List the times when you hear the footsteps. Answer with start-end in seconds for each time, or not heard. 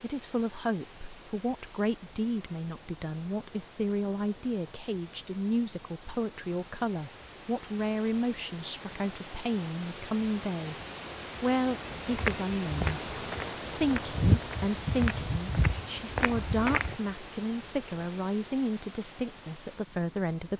11.8-16.9.